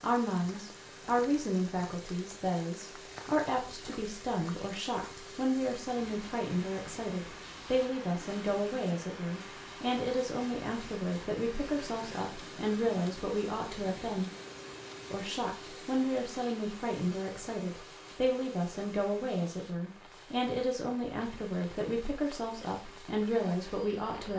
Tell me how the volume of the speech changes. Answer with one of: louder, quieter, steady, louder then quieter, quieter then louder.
steady.